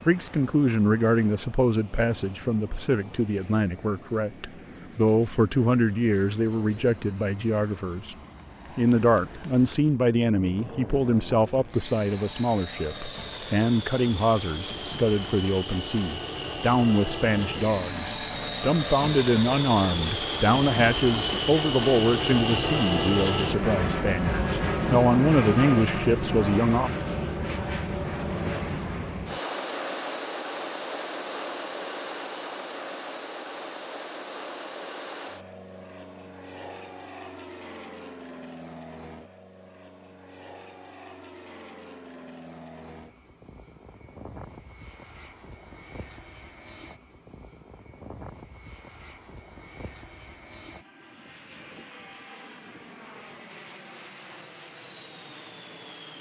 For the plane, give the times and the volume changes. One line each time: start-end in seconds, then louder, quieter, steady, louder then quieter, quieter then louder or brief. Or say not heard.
0.0-56.1 louder then quieter.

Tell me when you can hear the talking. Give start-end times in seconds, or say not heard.
0.1-8.2, 8.8-26.9.